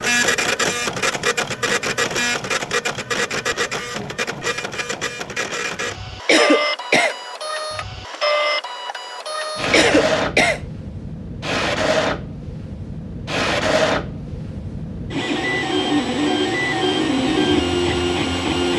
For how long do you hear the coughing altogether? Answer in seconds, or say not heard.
2 s.